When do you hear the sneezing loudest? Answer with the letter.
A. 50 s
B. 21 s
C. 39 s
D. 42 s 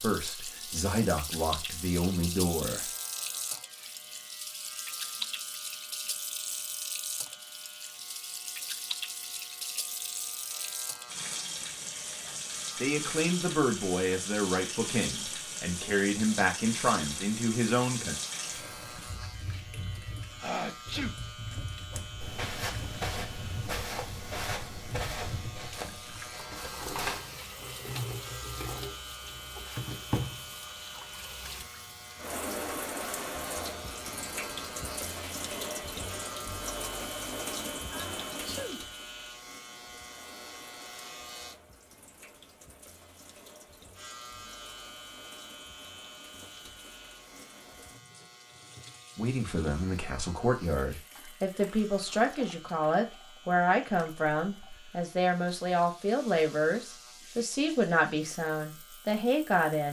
B.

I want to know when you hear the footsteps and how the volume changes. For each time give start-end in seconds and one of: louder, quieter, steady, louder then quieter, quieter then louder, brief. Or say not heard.
21.9-27.2 quieter.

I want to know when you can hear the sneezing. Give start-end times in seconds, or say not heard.
20.4-21.1, 37.9-38.8.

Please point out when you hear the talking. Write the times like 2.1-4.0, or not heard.
0.0-2.9, 12.8-18.1, 49.1-59.8.